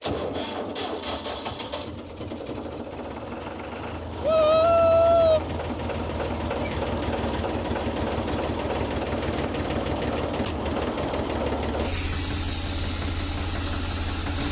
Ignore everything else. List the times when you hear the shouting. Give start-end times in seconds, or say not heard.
4.2-5.4.